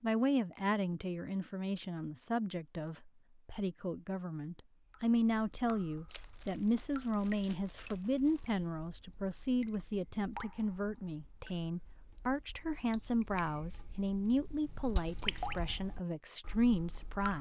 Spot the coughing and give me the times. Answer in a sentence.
The coughing can't be heard in this clip.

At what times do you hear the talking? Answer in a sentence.
You can hear the talking from 0.0 to 17.3 s.